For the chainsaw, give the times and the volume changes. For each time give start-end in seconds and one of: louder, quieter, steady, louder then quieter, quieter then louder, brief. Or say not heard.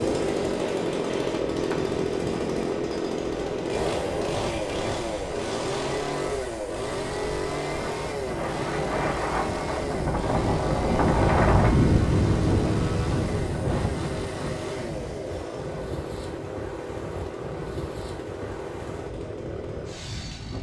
0.0-20.5 quieter.